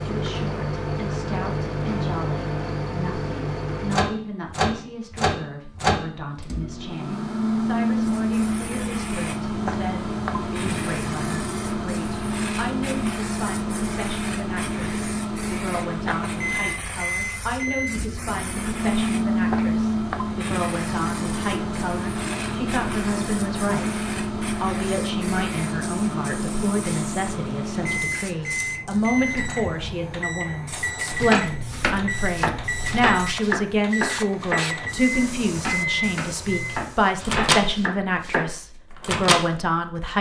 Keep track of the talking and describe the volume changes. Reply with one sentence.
The loudness of the talking goes up.